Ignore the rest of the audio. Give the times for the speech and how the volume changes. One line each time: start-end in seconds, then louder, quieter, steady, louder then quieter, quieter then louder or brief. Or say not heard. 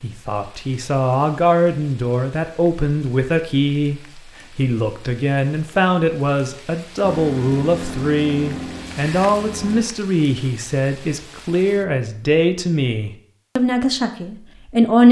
0.0-15.0 steady.